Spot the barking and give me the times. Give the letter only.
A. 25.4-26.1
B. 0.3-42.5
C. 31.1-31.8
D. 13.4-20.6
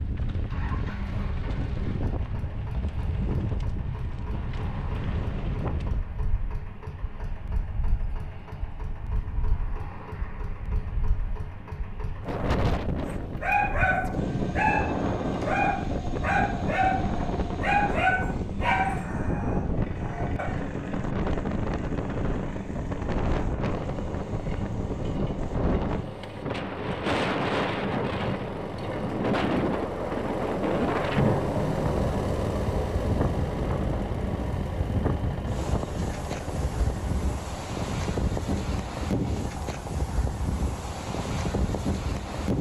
D.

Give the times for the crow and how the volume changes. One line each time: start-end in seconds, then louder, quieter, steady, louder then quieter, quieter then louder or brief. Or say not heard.
not heard.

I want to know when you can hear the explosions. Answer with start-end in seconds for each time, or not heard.
31.1-31.8.